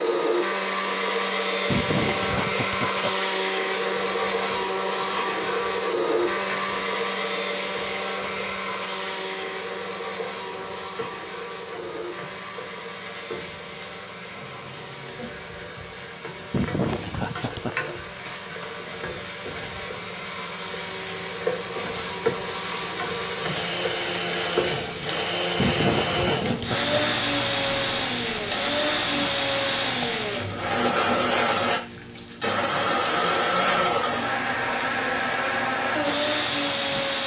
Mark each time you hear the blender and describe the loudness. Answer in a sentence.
The blender can be heard from 0.0 to 37.2 s, getting quieter then louder.